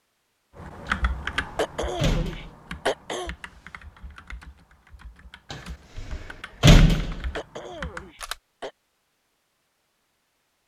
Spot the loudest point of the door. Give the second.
7 s.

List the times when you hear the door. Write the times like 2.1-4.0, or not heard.
0.8-2.5, 5.5-7.3.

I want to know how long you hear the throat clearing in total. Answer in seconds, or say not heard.
3 s.